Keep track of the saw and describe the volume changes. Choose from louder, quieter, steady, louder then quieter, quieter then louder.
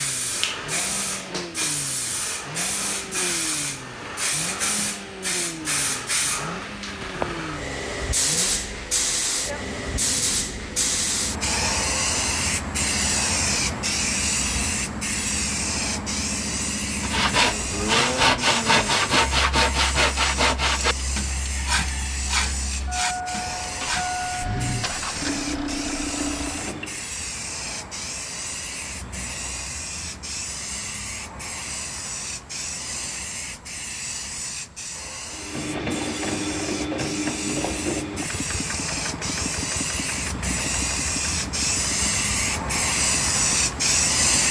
quieter.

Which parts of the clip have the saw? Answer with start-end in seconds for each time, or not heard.
17.0-24.1.